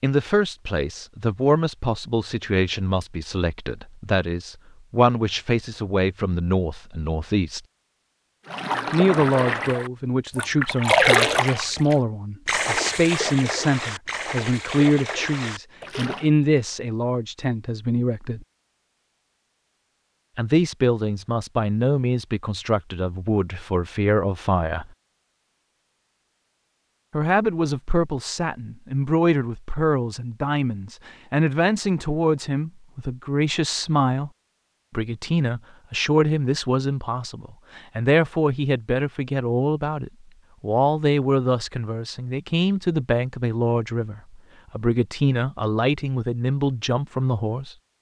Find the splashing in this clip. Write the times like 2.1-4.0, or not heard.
8.4-16.3.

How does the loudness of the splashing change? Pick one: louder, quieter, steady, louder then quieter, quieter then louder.
louder then quieter.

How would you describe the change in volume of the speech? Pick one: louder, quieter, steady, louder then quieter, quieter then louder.
steady.